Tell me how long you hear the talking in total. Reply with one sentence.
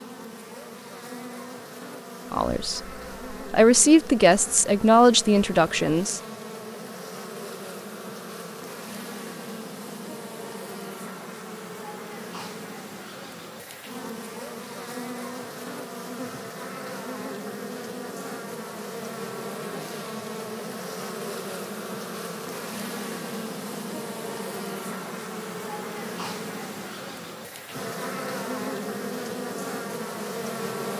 The talking can be heard for 4 seconds in total.